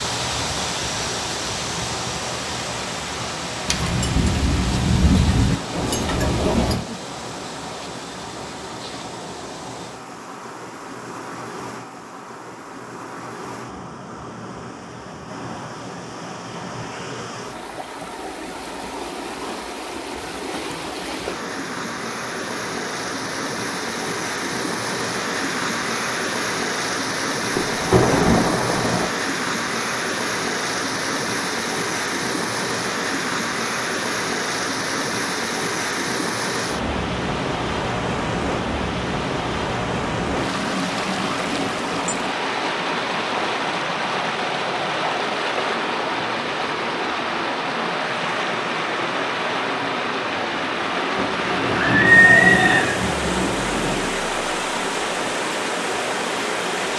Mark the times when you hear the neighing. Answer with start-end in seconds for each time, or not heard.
51.6-53.0.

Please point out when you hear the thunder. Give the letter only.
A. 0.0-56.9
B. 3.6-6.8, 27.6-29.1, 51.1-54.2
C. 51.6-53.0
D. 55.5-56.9
B.